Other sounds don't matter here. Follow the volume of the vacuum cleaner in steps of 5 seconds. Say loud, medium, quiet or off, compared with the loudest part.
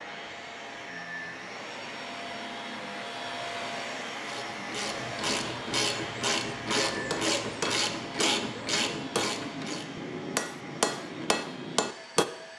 loud, loud, medium.